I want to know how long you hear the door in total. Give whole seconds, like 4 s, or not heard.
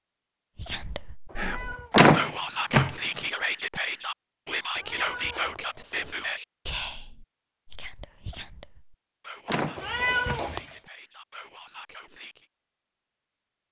2 s.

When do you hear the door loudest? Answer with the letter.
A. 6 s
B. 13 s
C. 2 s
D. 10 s
C.